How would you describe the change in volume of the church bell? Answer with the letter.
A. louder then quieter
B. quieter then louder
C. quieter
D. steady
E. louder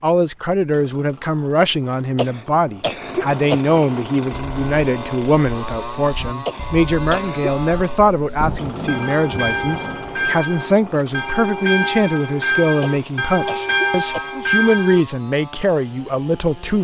E.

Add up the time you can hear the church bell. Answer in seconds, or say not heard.
11 s.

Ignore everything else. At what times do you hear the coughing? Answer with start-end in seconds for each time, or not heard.
1.9-3.8, 6.5-7.5, 12.8-14.4.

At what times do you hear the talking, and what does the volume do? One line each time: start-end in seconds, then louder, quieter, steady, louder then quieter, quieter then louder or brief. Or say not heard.
0.0-16.7 steady.